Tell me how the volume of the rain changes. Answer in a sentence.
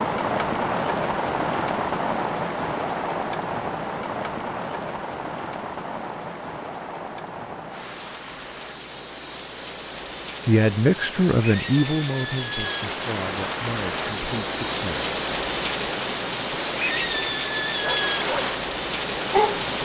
The volume of the rain goes down, then up.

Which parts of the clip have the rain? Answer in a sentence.
The rain can be heard from 0.0 to 19.8 s.